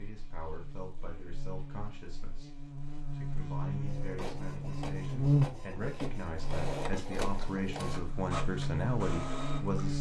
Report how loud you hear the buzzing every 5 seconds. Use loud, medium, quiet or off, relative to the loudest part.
medium, loud.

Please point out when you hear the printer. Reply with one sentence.
You can hear the printer from 3.9 to 9.9 s.